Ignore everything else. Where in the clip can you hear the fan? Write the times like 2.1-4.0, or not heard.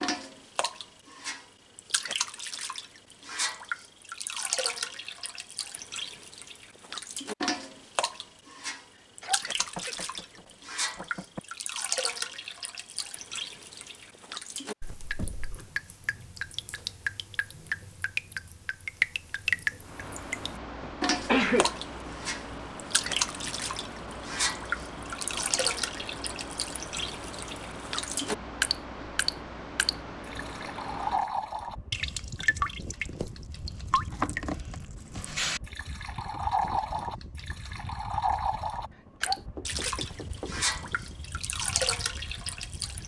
19.8-43.0.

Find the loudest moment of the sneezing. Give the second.
21 s.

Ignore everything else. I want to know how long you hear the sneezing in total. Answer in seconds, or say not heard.
3 s.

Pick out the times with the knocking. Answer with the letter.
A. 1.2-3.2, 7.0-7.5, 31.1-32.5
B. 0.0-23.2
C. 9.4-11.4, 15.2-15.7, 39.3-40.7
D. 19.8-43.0
C.